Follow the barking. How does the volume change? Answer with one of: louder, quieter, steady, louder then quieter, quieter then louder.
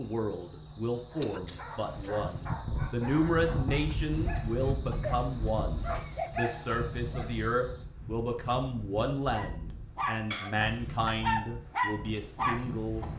louder.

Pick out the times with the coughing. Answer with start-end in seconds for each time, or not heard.
1.2-2.4, 4.9-6.8, 10.3-11.1.